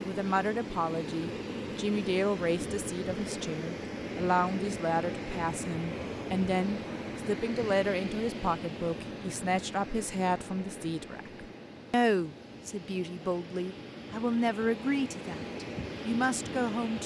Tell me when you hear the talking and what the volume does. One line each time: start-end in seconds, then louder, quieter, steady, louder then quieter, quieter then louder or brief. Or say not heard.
0.0-17.0 steady.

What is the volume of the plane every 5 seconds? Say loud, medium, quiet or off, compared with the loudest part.
loud, loud, medium, loud.